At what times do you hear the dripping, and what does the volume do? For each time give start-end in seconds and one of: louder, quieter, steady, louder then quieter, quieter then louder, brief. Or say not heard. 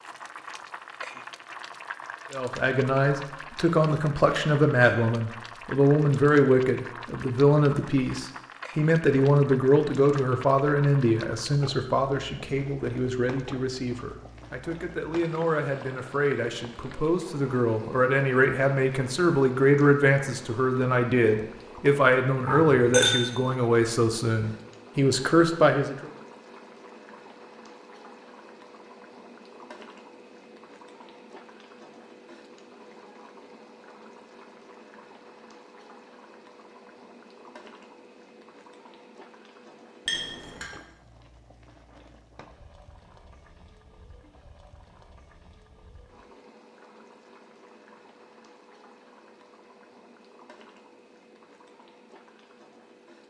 not heard.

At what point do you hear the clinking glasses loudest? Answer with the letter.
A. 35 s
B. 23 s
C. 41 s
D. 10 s
B.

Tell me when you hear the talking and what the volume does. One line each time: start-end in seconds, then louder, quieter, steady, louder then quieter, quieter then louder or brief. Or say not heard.
2.3-26.1 quieter then louder.